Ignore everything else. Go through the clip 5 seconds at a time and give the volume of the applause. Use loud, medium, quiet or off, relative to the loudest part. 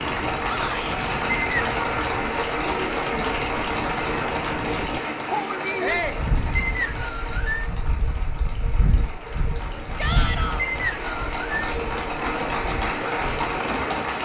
loud, medium, loud.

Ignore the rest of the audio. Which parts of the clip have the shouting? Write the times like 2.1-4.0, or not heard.
0.4-0.8, 5.8-6.2, 9.9-10.7.